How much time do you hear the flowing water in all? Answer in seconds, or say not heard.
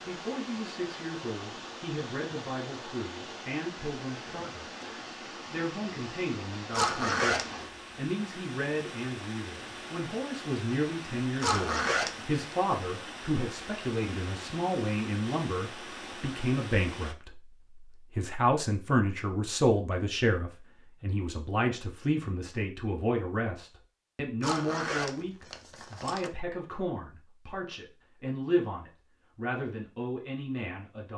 17 s.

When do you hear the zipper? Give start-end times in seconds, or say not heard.
6.7-7.5, 11.4-12.6, 24.4-26.3.